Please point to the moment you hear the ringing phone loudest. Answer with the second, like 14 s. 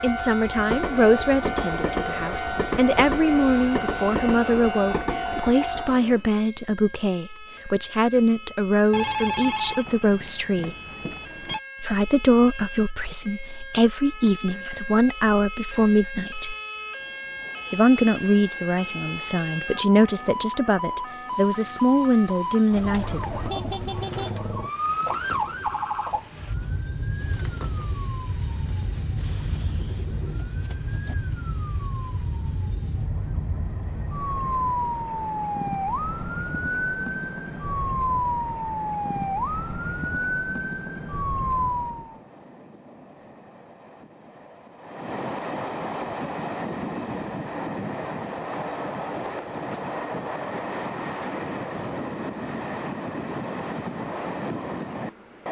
9 s.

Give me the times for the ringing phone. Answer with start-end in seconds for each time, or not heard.
8.9-11.6.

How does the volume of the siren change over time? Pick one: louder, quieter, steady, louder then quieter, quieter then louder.
louder.